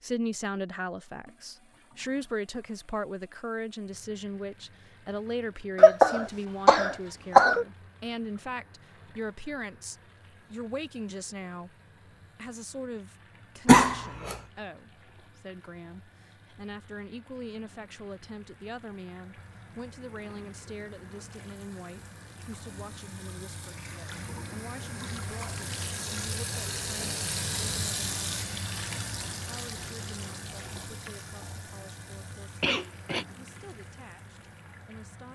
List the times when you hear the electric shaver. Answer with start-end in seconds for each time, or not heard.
not heard.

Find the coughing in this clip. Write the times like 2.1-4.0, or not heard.
5.8-7.7, 13.7-14.3, 32.6-33.2.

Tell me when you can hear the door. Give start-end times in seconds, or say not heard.
not heard.